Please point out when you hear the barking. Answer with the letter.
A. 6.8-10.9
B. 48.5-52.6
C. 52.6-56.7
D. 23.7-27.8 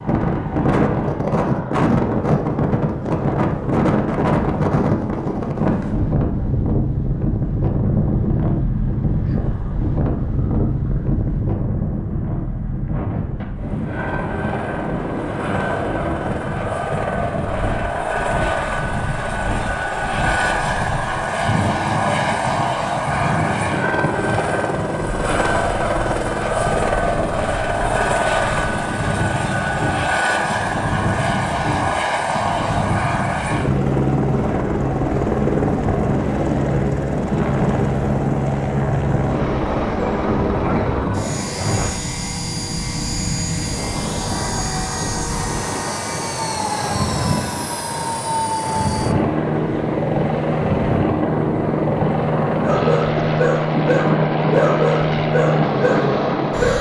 C.